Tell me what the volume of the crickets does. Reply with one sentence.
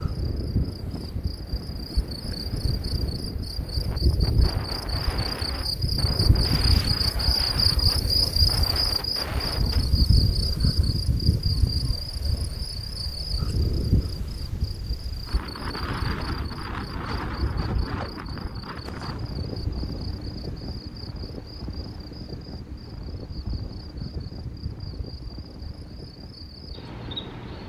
The loudness of the crickets goes up, then down.